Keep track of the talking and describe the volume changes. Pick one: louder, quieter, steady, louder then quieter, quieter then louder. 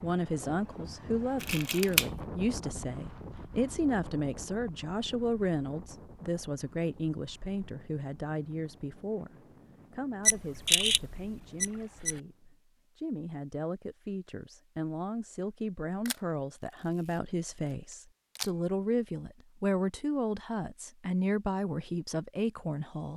quieter then louder.